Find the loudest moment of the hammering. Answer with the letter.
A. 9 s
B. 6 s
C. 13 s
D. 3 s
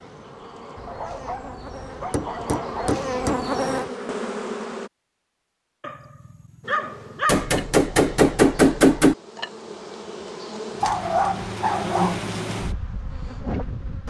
A.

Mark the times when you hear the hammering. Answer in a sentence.
The hammering can be heard from 0.8 to 3.5 s and from 7.2 to 9.2 s.